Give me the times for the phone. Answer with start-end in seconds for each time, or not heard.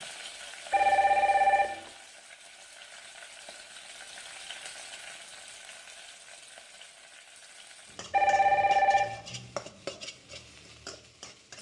0.7-1.9, 8.1-9.1.